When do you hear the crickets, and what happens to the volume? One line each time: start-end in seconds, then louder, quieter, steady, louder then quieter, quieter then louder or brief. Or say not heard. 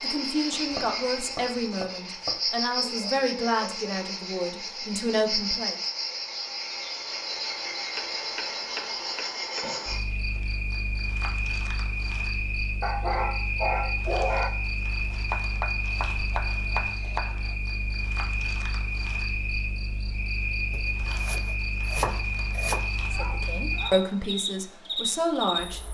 0.0-25.8 steady.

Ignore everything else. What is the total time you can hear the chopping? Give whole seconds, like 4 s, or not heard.
8 s.